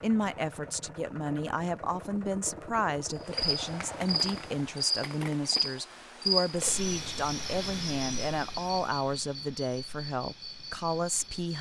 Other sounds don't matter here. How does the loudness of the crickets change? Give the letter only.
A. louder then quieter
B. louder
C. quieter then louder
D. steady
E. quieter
E.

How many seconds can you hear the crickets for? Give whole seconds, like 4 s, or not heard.
8 s.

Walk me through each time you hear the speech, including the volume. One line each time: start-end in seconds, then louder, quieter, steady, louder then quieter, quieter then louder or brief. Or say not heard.
0.0-11.5 steady.